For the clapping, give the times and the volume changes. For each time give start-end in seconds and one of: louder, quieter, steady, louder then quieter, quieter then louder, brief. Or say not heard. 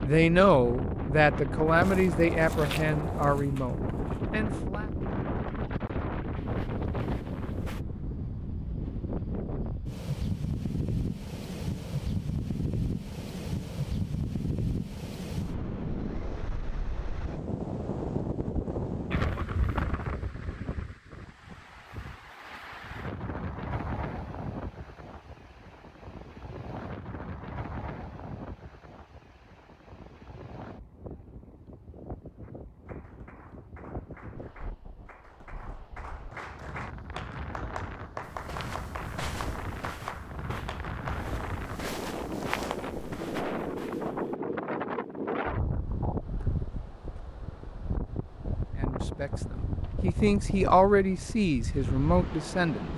32.4-41.2 louder.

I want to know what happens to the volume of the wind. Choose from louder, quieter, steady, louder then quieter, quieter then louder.
quieter then louder.